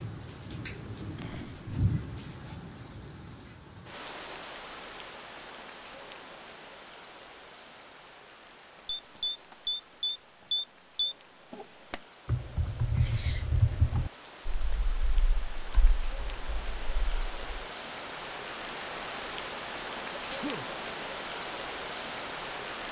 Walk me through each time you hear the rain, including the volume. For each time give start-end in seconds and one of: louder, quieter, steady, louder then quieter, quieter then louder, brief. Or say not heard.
0.0-22.8 quieter then louder.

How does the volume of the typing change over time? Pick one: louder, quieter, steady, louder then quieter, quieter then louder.
quieter.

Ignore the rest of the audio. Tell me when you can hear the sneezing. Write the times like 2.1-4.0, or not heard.
1.1-1.8, 12.9-13.5, 20.1-20.6.